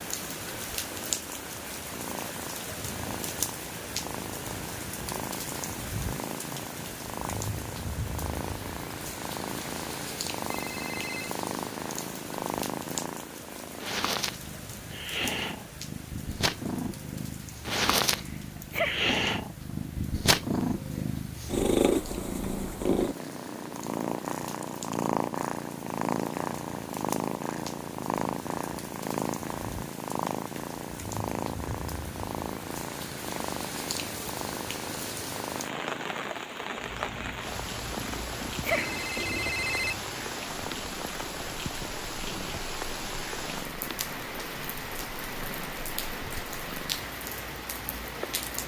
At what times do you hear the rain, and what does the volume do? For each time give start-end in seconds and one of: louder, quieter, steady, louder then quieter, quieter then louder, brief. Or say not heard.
0.0-48.6 quieter then louder.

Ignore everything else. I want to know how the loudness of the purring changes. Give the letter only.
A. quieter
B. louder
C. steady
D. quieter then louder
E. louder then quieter
E.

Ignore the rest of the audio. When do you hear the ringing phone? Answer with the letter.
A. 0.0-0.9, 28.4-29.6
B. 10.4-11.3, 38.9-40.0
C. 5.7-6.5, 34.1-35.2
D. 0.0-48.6
B.